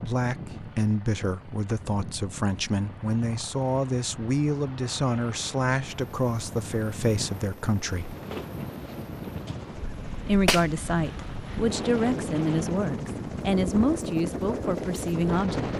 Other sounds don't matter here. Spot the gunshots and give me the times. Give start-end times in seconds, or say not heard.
10.4-11.7.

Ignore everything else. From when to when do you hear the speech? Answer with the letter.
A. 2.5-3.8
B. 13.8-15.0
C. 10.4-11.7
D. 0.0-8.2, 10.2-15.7
D.